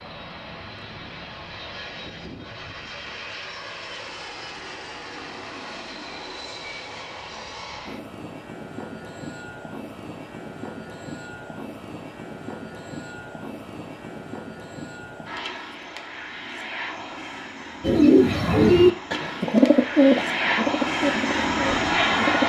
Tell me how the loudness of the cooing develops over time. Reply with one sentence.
The volume of the cooing goes down.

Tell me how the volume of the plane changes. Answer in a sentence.
The loudness of the plane goes up.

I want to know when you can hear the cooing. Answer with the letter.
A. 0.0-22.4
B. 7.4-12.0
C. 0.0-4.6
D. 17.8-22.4
D.